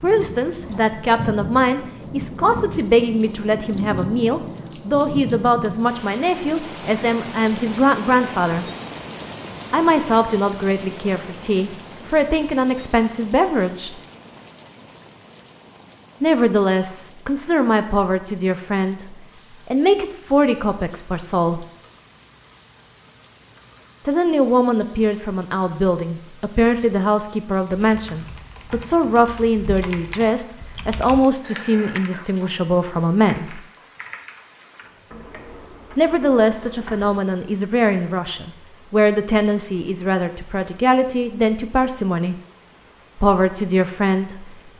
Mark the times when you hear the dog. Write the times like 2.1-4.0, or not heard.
not heard.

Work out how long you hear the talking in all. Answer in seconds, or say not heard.
36 s.